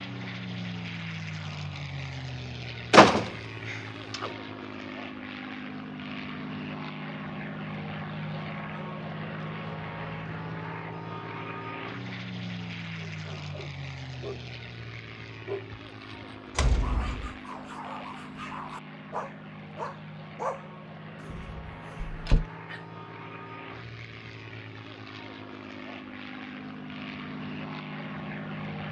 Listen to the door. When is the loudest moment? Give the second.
3 s.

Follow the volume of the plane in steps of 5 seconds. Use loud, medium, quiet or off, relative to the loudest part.
loud, loud, loud, medium, medium, loud.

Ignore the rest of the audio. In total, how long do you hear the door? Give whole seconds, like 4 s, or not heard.
3 s.